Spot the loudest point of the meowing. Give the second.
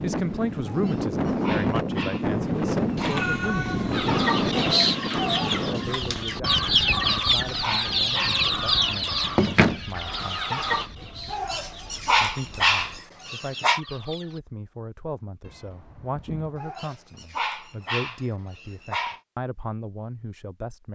3 s.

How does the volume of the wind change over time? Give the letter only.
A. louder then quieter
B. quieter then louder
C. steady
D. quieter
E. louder
D.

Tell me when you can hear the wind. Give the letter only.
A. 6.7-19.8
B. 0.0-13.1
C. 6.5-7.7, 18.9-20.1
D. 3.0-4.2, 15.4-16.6
B.